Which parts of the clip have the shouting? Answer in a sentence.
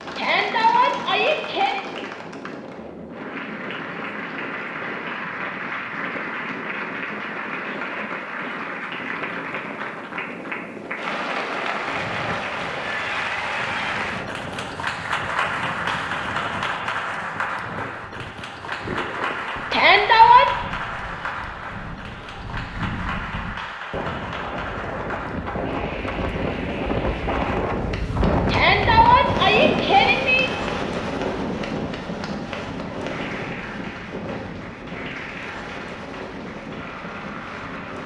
You can hear the shouting from 0.1 to 1.8 s, from 19.7 to 20.4 s and from 28.4 to 30.5 s.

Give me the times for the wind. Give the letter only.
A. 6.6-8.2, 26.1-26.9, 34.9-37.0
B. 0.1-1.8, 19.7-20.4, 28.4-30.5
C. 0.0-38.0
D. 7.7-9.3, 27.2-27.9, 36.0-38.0
C.